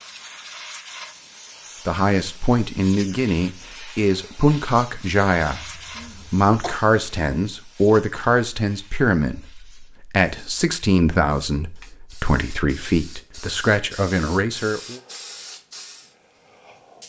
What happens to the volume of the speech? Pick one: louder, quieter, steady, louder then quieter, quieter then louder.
steady.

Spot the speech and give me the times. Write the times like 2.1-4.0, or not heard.
1.9-5.6, 6.3-15.0.